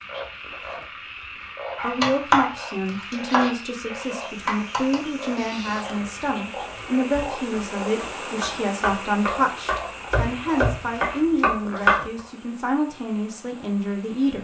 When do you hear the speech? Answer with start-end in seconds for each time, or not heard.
1.8-14.3.